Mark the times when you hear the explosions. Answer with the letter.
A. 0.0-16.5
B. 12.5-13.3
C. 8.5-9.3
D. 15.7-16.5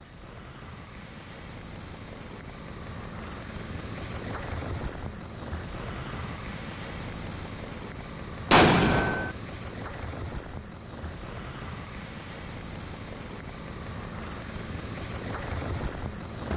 C.